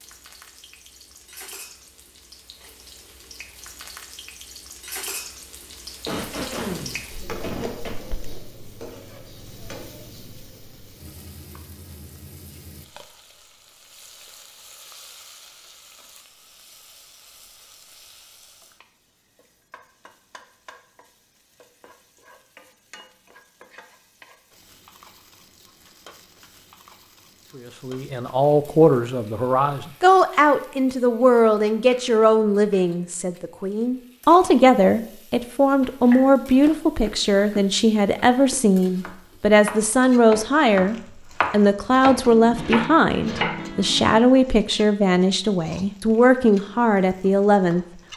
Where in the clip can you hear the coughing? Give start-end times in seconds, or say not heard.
6.0-8.0.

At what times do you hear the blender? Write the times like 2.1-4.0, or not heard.
not heard.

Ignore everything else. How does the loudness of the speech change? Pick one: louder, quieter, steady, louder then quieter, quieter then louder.
steady.